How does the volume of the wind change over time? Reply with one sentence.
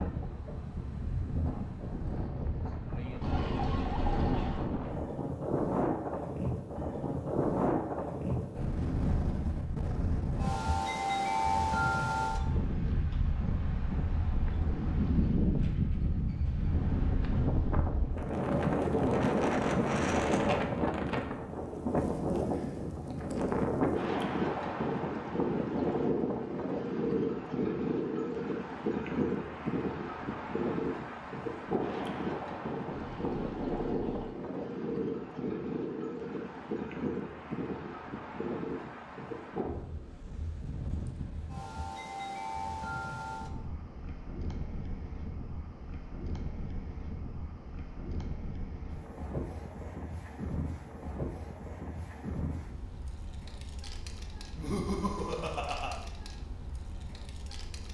The loudness of the wind goes down.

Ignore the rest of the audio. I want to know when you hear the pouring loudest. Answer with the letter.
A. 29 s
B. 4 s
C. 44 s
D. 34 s
B.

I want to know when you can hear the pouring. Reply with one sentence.
You can hear the pouring from 3.2 to 4.7 s and from 32.9 to 34.4 s.